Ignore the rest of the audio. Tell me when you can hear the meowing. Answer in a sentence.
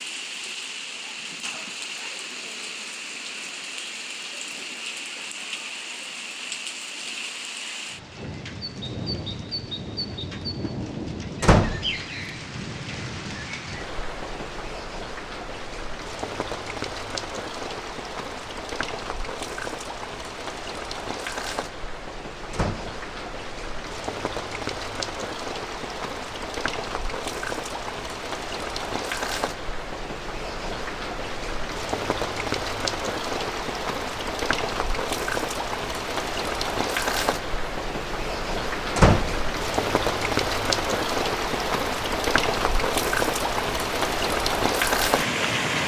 You can't hear the meowing here.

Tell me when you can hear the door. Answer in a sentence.
You can hear the door from 11.4 to 11.9 s, from 22.5 to 23.0 s and from 39.0 to 39.4 s.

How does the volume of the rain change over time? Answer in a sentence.
The loudness of the rain goes up.